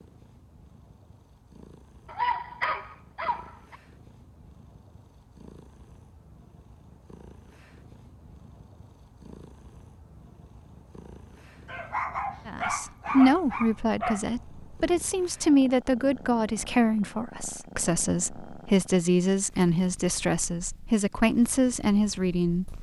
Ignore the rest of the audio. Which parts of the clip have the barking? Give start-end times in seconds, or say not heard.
2.0-3.8, 11.7-14.2.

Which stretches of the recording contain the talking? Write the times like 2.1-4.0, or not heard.
12.4-22.7.